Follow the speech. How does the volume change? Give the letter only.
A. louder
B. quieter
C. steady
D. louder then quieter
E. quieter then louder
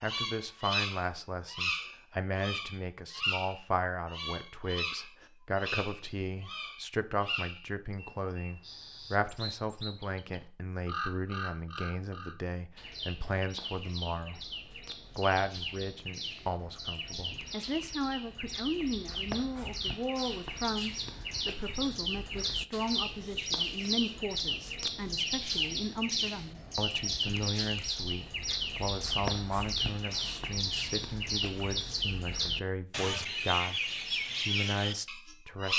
C.